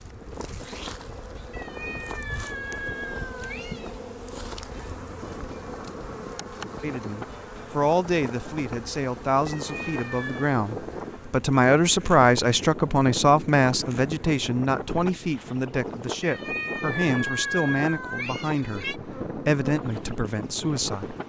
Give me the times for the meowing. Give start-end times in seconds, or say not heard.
1.5-4.0, 9.4-10.5, 16.2-19.0.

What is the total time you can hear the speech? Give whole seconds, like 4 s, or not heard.
14 s.